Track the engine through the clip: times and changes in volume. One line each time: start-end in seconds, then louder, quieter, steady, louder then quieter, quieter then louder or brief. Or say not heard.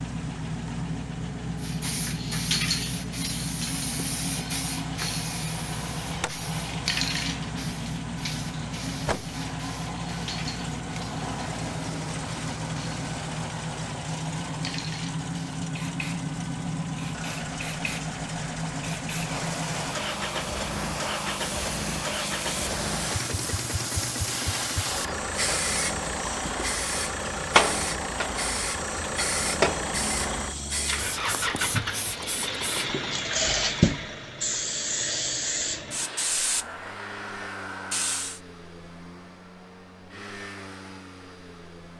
0.0-41.9 quieter.